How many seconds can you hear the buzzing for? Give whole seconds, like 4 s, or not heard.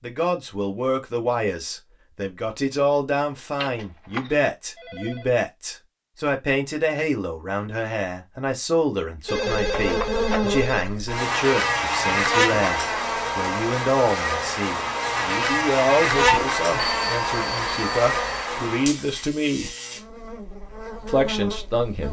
13 s.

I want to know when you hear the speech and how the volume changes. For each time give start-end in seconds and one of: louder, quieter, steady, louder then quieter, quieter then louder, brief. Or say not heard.
0.0-19.8 steady
21.1-22.0 brief.